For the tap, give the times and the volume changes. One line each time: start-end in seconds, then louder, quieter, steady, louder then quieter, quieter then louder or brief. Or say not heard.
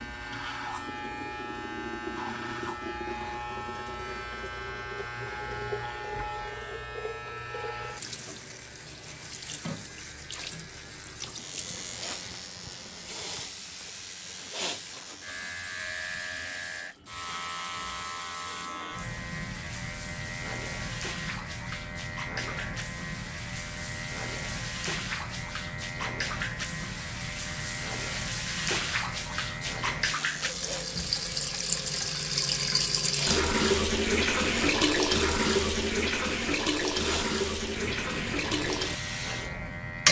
0.0-40.0 louder.